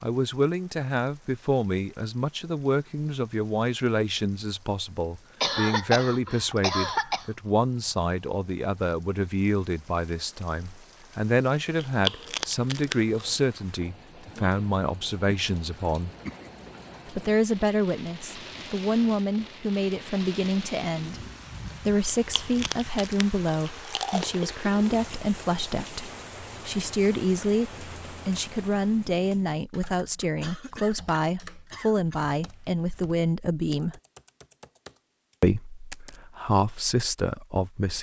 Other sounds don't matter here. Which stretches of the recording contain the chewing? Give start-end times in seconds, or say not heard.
11.8-13.4, 22.1-25.0.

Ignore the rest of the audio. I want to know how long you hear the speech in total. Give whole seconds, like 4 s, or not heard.
35 s.